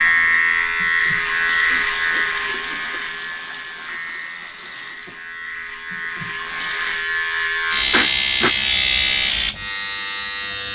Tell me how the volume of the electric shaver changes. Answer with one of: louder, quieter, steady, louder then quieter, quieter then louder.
quieter then louder.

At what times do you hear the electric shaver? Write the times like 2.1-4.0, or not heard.
0.0-10.7.